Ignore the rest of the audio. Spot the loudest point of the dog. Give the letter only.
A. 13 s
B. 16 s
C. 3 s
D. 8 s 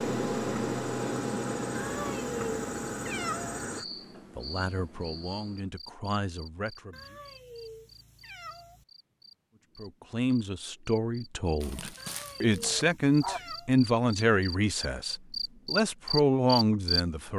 A.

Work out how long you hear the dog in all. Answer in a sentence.
You can hear the dog for 2 seconds altogether.